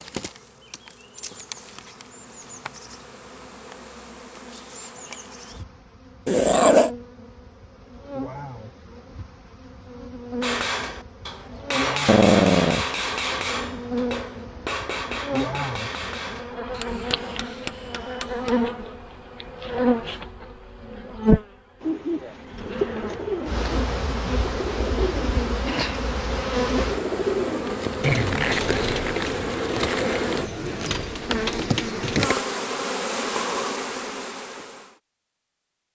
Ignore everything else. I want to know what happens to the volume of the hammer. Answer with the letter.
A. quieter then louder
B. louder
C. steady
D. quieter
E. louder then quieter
D.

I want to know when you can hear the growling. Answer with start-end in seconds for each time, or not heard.
6.2-6.9, 12.1-12.8, 28.0-29.1.